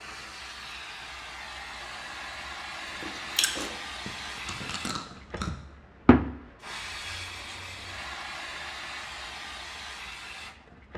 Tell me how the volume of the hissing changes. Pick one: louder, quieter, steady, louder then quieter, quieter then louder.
louder then quieter.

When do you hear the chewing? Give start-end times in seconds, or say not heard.
2.9-5.5.